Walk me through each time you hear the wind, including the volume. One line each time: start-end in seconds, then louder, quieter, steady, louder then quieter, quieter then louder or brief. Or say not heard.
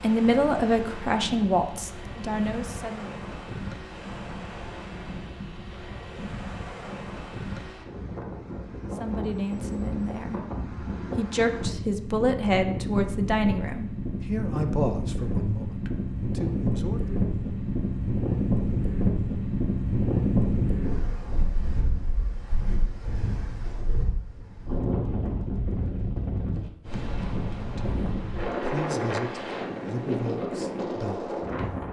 0.0-31.8 louder.